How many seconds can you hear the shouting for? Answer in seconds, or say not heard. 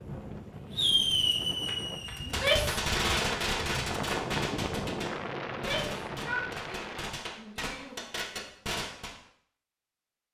3 s.